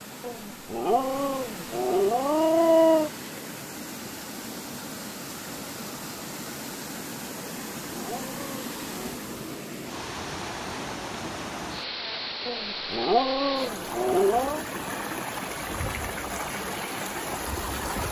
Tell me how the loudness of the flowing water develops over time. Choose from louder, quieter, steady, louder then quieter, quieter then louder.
louder.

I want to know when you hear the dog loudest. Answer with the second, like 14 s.
3 s.